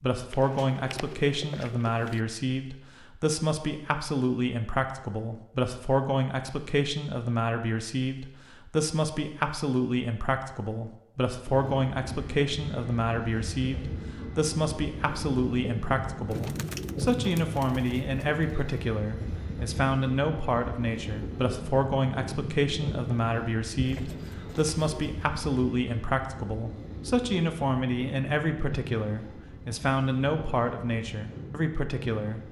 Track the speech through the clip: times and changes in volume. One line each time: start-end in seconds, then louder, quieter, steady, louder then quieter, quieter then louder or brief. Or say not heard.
0.0-32.4 steady.